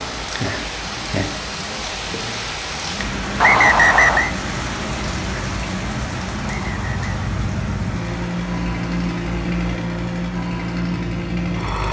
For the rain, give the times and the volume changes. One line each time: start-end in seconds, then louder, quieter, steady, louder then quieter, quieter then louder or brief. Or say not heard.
0.0-11.8 quieter.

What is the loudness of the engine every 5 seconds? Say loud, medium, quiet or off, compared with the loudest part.
quiet, loud, loud.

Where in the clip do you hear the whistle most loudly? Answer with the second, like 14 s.
4 s.